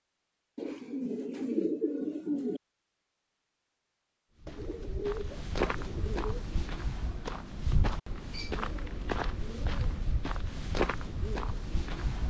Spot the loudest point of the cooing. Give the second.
2 s.